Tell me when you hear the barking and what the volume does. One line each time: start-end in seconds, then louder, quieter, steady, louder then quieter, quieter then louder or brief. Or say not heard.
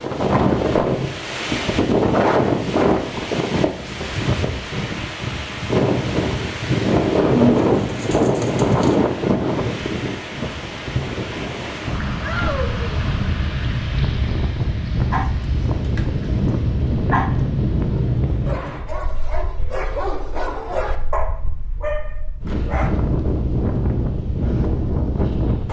15.1-16.3 brief
17.1-22.9 louder.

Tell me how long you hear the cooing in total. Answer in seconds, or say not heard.
2 s.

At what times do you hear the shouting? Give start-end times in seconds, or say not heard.
12.2-13.0.